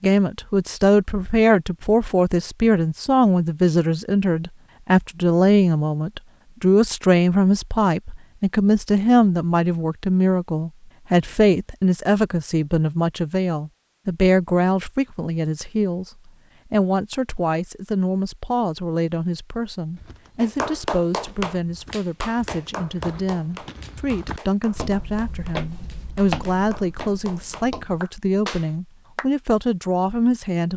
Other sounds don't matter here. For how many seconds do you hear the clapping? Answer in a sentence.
You can hear the clapping for 9 seconds altogether.